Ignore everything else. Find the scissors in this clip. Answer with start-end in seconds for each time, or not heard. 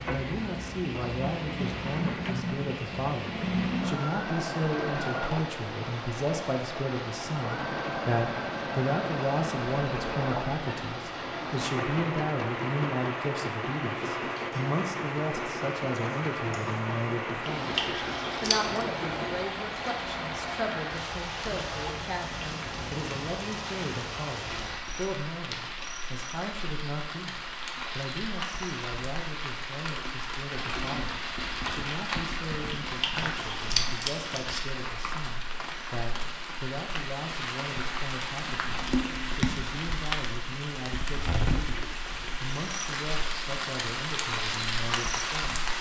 17.6-18.9, 32.9-34.6.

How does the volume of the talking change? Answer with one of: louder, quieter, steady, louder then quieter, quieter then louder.
quieter.